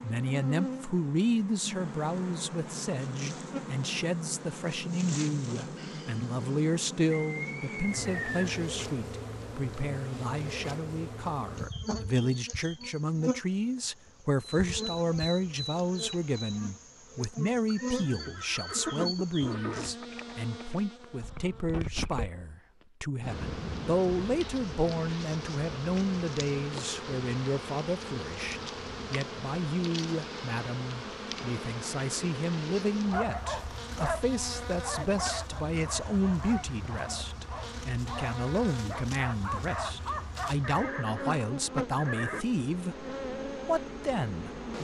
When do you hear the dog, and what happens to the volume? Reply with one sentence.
The dog can be heard from 33.1 to 40.5 s, getting quieter then louder.